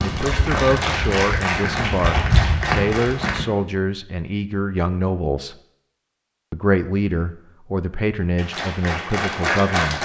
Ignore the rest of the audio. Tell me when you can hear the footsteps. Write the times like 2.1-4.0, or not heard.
0.0-3.5.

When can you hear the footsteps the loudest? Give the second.
2 s.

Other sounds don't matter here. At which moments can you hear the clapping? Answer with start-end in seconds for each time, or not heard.
0.0-3.4, 8.3-9.9.